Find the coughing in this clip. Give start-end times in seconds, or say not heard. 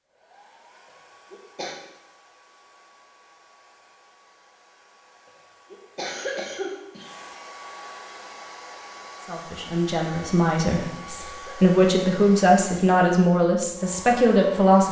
1.3-1.8, 5.7-7.2, 11.2-11.7.